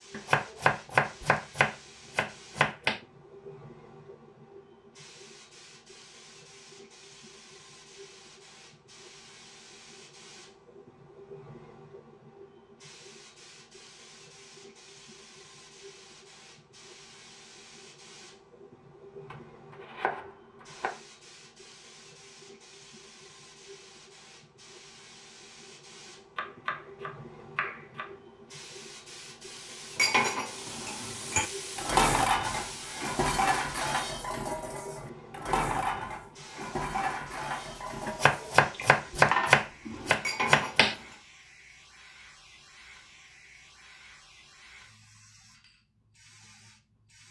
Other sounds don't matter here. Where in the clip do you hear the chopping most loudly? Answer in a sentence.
The loudest moment of the chopping is at 39 seconds.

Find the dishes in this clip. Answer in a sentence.
You can hear the dishes from 29.9 to 41.1 s.